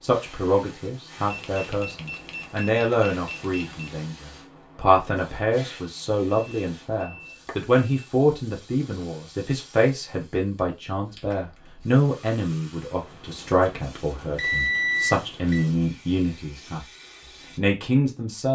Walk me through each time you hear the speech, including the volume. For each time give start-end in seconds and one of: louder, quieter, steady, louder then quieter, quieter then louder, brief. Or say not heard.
0.0-16.9 steady
17.6-18.5 brief.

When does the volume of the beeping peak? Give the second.
15 s.